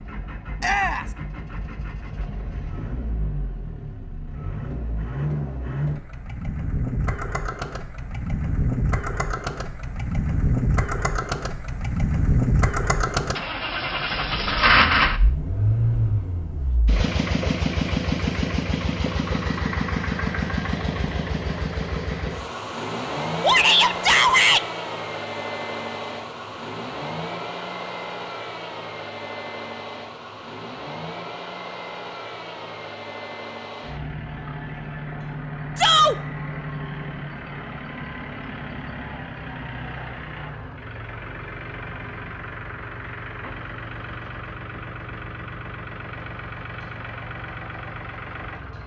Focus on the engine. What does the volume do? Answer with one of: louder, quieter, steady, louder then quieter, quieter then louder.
louder then quieter.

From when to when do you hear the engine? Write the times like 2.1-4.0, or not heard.
0.0-48.8.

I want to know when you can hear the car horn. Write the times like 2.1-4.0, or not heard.
not heard.